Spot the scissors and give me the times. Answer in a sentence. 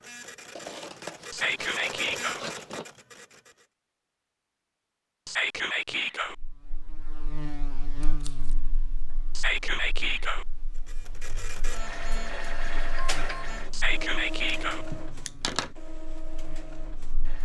You can hear the scissors from 0.6 to 2.9 s, from 8.0 to 8.6 s and from 14.4 to 15.7 s.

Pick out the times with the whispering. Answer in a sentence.
You can hear the whispering from 1.3 to 2.4 s, from 5.2 to 6.3 s, from 9.3 to 10.4 s and from 13.7 to 14.8 s.